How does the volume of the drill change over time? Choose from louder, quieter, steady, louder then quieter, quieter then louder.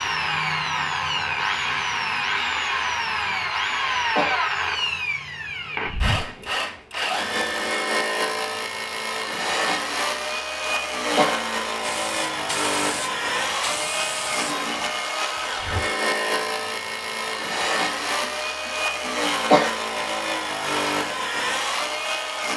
steady.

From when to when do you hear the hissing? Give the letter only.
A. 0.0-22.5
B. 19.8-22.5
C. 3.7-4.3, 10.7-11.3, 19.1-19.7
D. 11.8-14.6
D.